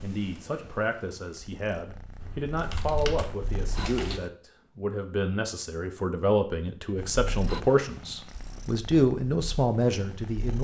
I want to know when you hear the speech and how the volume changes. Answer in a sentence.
You can hear the speech from 0.0 to 10.5 s, getting louder.